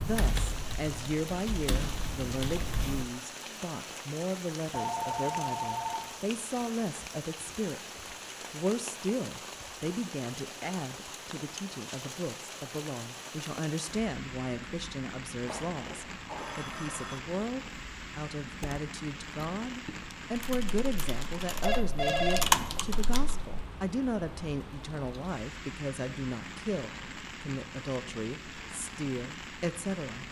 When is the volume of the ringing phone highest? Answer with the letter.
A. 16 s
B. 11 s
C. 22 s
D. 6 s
C.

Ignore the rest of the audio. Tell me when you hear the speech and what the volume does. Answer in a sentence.
The speech can be heard from 0.0 to 30.2 s, at a steady volume.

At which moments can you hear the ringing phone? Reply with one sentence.
The ringing phone can be heard from 4.7 to 6.1 s, from 15.4 to 17.2 s and from 21.6 to 22.9 s.